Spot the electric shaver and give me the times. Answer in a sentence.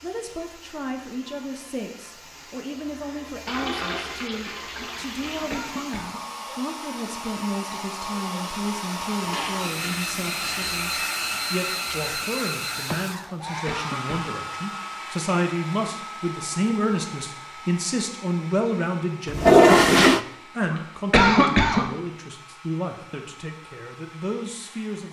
The electric shaver can't be heard in this clip.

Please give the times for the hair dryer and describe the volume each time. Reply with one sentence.
The hair dryer can be heard from 0.0 to 25.0 s, getting louder then quieter.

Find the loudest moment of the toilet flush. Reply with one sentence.
The loudest moment of the toilet flush is at 20 seconds.